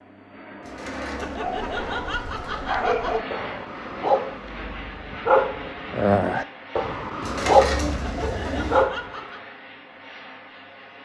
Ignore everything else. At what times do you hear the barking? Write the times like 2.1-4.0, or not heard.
1.4-9.2.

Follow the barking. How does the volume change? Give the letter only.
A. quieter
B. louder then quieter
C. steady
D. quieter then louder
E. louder
E.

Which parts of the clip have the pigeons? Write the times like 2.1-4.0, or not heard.
0.6-2.6, 7.2-8.8.